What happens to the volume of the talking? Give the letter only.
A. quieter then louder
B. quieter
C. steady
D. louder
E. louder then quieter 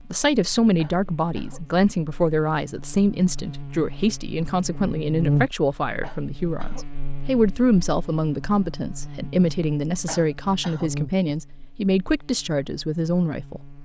C.